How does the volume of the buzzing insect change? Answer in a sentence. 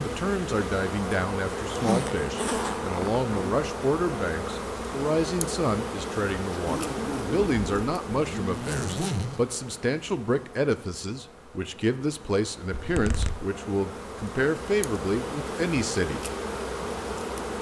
The volume of the buzzing insect goes down, then up.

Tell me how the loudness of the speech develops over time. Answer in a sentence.
The volume of the speech stays about the same.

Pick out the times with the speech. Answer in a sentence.
The speech can be heard from 0.0 to 16.2 s.